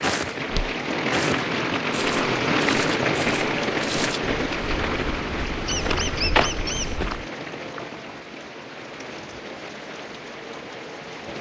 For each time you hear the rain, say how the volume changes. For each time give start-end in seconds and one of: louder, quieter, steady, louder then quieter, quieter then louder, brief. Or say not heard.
0.0-11.3 quieter.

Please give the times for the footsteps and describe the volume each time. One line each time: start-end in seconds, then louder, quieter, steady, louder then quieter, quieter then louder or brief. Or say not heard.
0.0-7.2 quieter then louder.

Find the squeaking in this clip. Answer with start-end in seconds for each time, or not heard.
5.7-7.0.